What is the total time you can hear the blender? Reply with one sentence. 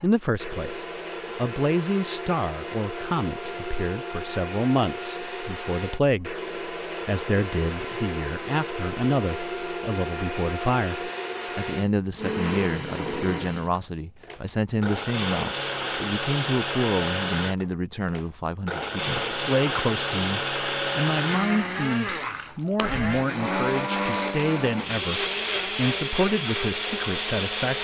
The blender can be heard for 28 seconds in total.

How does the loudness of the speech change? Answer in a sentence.
The volume of the speech stays about the same.